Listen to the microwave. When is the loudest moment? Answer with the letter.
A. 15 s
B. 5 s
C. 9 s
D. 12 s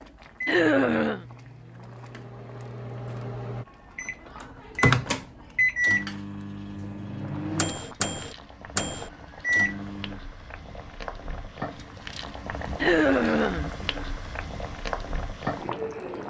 B.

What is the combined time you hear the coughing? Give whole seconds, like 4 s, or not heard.
2 s.